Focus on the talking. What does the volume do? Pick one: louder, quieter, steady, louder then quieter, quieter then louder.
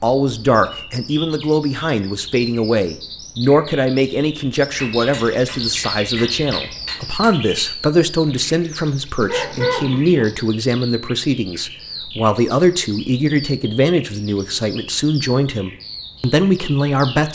steady.